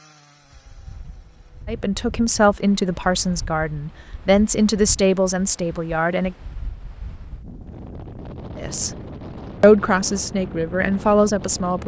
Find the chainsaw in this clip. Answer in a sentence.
You can hear the chainsaw from 0.0 to 1.6 s.